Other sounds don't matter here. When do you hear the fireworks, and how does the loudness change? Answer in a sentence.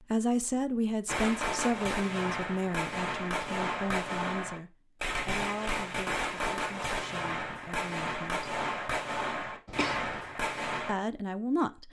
You can hear the fireworks from 1.1 to 10.9 s, at a steady volume.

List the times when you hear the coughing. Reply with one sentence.
You can hear the coughing from 9.7 to 10.3 s.